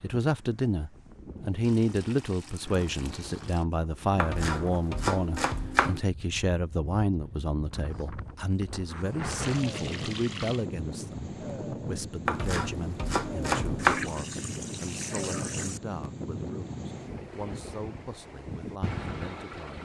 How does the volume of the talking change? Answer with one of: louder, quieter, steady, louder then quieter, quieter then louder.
quieter.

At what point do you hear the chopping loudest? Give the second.
14 s.